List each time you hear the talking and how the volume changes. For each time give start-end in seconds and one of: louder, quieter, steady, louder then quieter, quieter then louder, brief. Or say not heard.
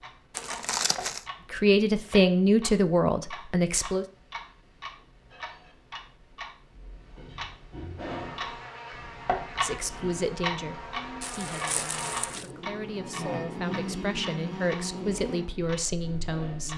1.5-4.0 brief
9.6-16.7 quieter then louder.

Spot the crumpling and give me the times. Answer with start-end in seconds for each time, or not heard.
0.3-1.2, 11.2-12.5.